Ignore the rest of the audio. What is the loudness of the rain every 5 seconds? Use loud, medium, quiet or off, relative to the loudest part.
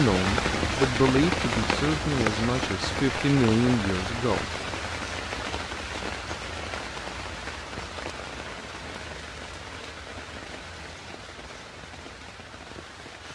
loud, medium, quiet.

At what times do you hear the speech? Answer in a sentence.
You can hear the speech from 0.0 to 4.5 s.